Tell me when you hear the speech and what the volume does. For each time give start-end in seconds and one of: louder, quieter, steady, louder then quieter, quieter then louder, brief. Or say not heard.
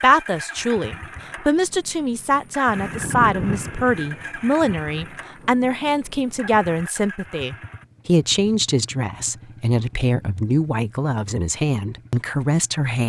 0.0-13.0 steady.